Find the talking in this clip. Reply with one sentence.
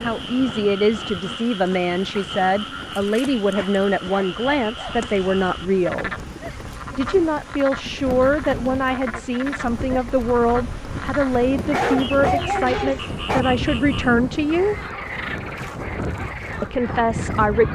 The talking can be heard from 0.0 to 6.2 s, from 7.0 to 14.8 s and from 16.6 to 17.6 s.